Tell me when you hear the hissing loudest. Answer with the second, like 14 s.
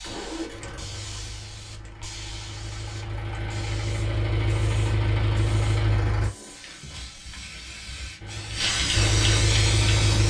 9 s.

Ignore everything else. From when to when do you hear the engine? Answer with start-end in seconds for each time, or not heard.
0.0-6.3, 8.2-10.2.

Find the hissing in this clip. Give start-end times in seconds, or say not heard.
0.0-10.2.